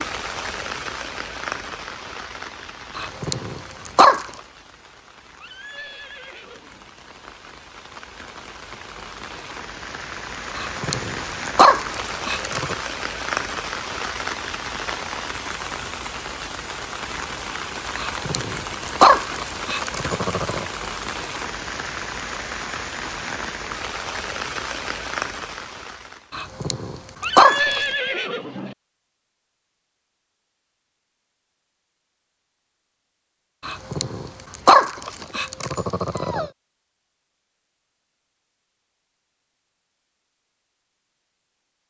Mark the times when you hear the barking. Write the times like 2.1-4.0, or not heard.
3.0-4.3, 10.6-12.8, 17.9-20.6, 26.3-27.8, 33.6-36.5.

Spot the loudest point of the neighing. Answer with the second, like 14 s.
28 s.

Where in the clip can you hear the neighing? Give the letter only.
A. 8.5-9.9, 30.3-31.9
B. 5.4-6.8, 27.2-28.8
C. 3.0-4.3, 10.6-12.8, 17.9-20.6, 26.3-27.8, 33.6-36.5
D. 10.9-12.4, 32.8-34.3
B.